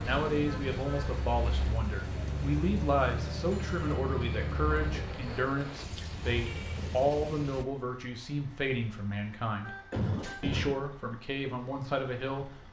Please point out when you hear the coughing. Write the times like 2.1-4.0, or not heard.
9.9-10.8.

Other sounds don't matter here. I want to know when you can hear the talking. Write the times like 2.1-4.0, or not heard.
0.0-9.8, 10.4-12.5.